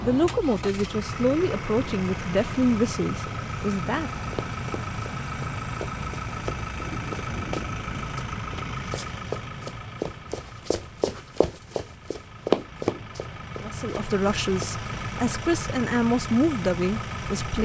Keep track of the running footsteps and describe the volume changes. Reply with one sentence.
The volume of the running footsteps goes up.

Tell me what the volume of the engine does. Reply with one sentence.
The loudness of the engine goes down, then up.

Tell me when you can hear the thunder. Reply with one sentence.
The thunder can be heard from 6.8 to 8.1 s.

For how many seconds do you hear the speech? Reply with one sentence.
You can hear the speech for 8 seconds altogether.